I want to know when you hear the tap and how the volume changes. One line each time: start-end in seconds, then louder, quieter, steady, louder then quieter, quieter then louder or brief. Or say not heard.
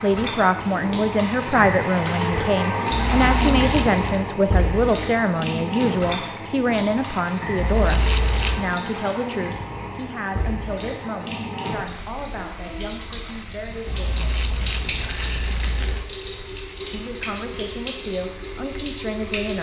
0.0-19.5 quieter.